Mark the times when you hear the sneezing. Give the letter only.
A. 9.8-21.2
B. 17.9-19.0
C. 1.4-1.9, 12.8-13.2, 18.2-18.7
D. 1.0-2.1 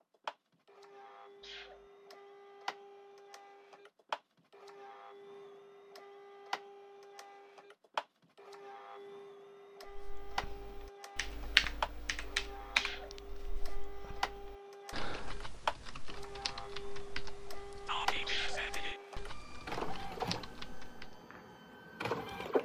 C.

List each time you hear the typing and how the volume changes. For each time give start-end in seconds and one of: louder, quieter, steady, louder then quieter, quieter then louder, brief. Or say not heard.
9.8-21.2 quieter.